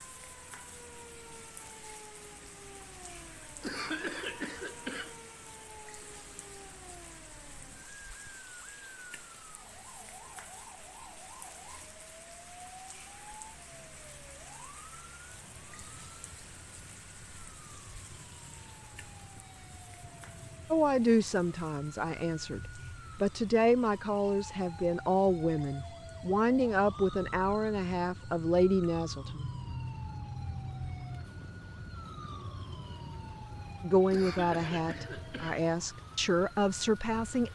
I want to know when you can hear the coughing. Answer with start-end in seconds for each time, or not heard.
3.6-5.2, 34.1-35.6.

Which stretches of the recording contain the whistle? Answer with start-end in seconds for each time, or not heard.
not heard.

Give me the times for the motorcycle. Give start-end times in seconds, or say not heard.
not heard.